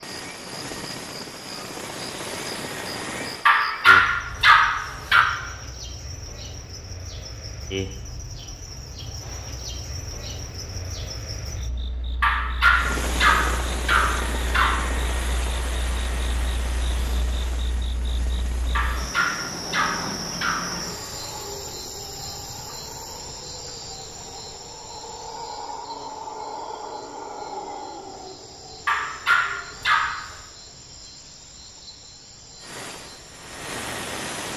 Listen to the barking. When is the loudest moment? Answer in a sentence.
The volume of the barking peaks at 4 seconds.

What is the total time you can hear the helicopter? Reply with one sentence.
You can hear the helicopter for 14 seconds altogether.